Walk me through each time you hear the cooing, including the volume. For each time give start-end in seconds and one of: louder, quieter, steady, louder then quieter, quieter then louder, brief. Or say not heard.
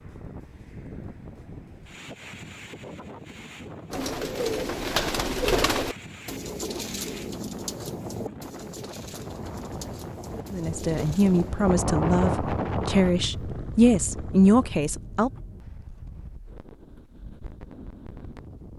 3.9-11.5 quieter.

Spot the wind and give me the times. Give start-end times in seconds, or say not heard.
0.0-18.7.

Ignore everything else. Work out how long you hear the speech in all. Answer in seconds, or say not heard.
5 s.